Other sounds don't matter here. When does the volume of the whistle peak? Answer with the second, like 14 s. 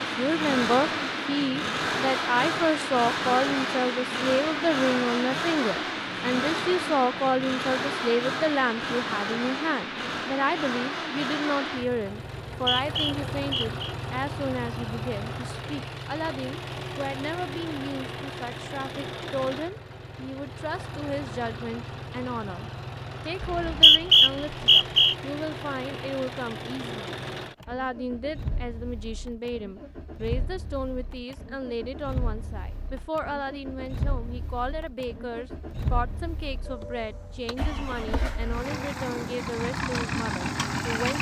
24 s.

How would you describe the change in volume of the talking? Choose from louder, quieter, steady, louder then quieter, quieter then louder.
quieter.